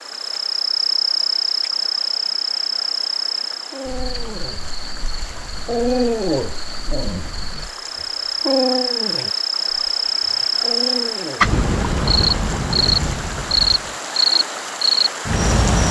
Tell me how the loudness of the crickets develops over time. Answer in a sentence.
The loudness of the crickets goes down, then up.